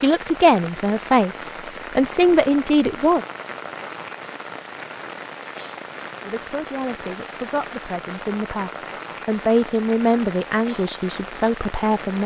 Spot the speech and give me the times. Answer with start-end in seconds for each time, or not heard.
0.0-3.2, 6.2-12.2.